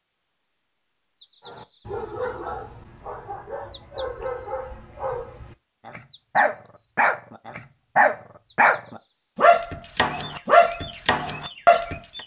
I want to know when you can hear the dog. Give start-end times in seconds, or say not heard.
1.4-12.0.